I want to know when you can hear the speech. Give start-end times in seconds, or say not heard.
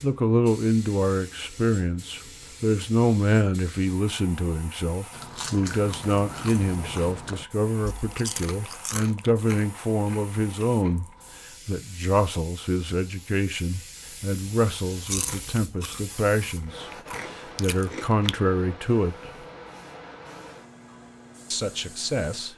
0.0-11.1, 11.7-19.3, 21.5-22.5.